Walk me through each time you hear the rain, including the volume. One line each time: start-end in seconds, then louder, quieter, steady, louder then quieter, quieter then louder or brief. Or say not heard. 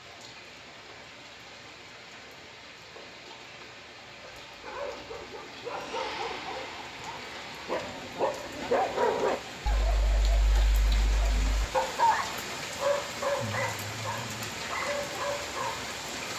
0.0-16.3 louder.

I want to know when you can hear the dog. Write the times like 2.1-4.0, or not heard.
4.2-15.8.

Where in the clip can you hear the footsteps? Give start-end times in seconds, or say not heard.
not heard.